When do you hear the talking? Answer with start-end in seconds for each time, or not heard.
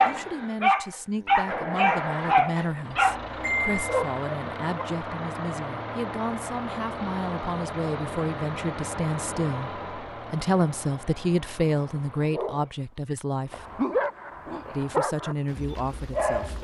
0.0-13.7, 14.7-16.5.